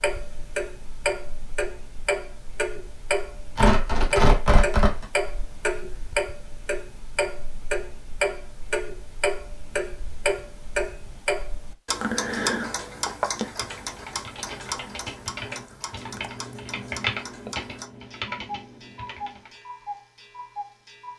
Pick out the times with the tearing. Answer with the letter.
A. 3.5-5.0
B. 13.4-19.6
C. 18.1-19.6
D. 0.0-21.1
A.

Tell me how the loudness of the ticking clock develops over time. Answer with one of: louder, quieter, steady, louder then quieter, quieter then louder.
quieter.